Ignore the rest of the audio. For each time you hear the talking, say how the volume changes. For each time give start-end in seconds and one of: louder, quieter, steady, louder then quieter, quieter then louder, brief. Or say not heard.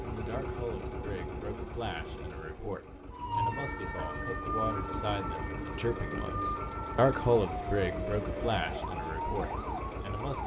0.0-10.4 louder then quieter.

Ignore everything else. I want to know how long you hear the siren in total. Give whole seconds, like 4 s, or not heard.
7 s.